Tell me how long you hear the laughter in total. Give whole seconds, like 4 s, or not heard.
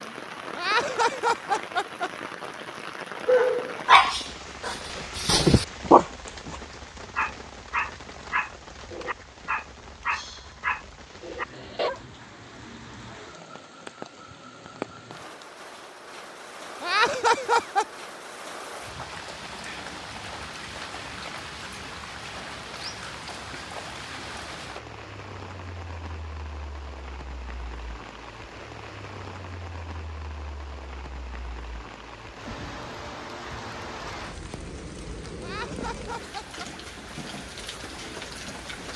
4 s.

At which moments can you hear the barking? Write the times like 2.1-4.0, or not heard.
3.2-12.0.